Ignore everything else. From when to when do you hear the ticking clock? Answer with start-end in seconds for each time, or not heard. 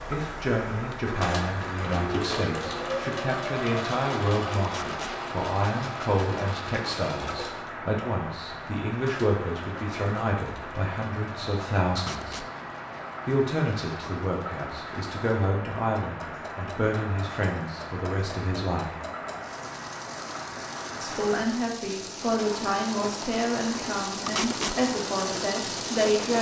not heard.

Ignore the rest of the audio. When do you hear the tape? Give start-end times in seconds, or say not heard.
4.6-5.2, 11.9-12.4, 24.2-24.8.